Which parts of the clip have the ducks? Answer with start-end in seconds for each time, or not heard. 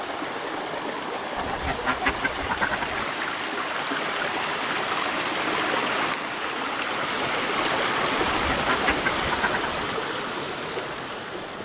1.4-3.0, 8.2-9.8.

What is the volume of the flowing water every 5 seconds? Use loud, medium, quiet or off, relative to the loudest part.
loud, loud, medium.